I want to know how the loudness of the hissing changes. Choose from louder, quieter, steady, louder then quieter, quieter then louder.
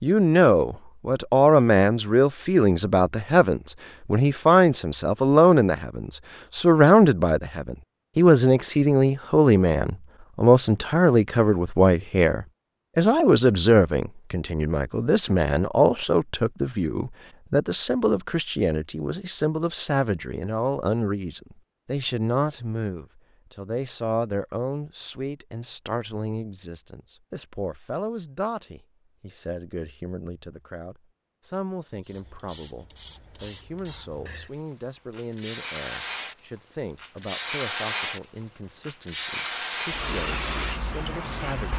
louder.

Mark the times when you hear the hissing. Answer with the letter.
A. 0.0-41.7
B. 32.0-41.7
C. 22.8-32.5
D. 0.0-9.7
B.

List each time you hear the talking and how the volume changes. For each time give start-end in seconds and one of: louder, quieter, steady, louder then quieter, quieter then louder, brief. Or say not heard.
0.0-41.7 quieter.